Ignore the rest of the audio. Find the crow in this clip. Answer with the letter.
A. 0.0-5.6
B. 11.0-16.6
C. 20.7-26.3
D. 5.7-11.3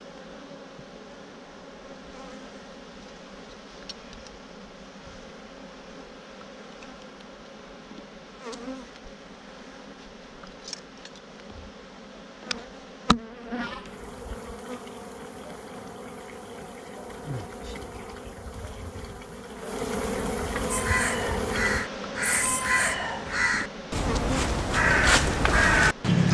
C.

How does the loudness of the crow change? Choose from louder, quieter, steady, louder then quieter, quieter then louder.
louder.